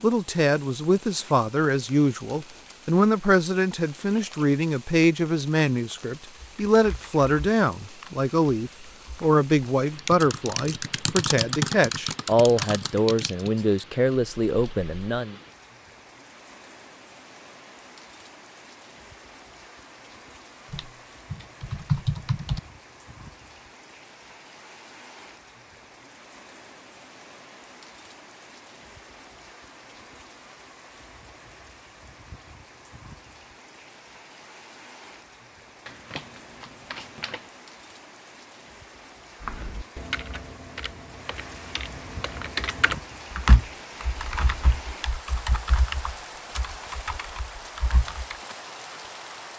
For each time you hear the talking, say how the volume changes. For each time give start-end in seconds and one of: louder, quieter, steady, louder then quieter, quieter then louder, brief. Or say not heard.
0.0-15.3 steady.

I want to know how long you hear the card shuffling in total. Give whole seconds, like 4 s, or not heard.
2 s.